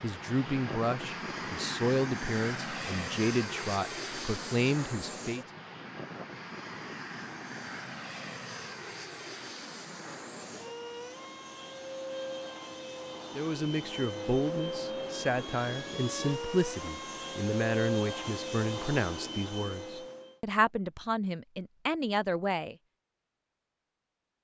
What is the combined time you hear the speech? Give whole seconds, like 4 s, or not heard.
15 s.